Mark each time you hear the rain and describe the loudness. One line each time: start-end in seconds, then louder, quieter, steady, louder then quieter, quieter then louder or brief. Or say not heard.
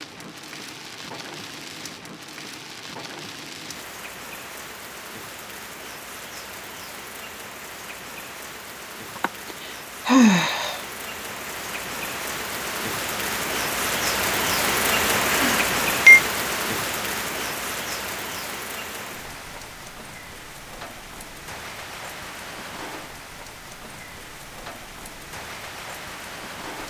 0.0-26.8 louder then quieter.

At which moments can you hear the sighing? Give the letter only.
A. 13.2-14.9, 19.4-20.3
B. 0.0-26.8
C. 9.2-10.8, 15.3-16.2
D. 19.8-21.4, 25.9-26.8
C.